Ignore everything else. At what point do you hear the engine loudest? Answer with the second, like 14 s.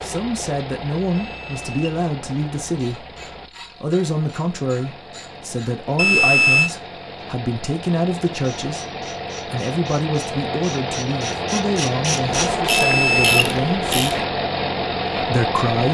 13 s.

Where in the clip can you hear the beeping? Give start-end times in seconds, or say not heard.
1.1-1.8, 6.0-6.7, 12.7-13.6.